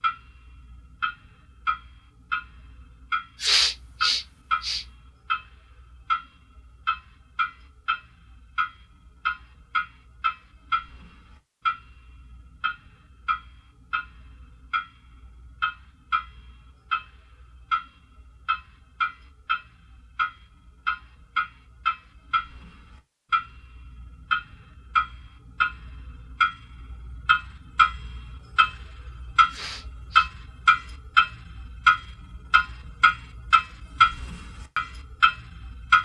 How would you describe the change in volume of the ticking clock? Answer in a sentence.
The volume of the ticking clock goes up.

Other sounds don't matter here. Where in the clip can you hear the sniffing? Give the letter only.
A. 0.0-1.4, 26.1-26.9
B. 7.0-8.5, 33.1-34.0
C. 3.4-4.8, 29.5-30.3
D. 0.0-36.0
C.